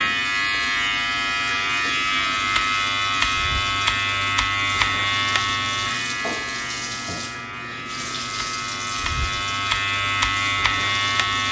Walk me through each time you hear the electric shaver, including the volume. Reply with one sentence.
You can hear the electric shaver from 0.0 to 11.4 s, getting quieter then louder.